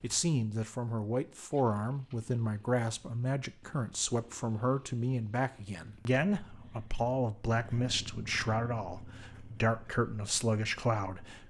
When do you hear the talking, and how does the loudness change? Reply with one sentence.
You can hear the talking from 0.0 to 11.4 s, at a steady volume.